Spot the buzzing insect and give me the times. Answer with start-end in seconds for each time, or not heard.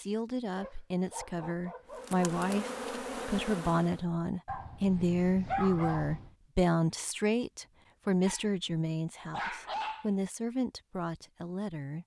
1.9-4.0.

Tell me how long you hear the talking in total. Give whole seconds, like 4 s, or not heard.
12 s.